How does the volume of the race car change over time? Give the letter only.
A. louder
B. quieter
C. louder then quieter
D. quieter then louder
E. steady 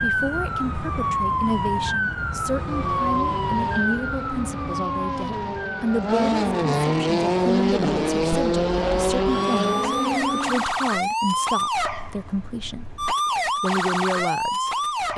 A.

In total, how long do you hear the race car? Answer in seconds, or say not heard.
8 s.